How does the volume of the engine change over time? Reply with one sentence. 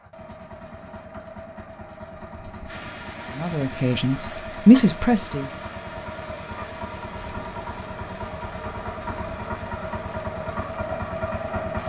The volume of the engine goes up.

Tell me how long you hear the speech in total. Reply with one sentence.
The speech can be heard for 2 seconds in total.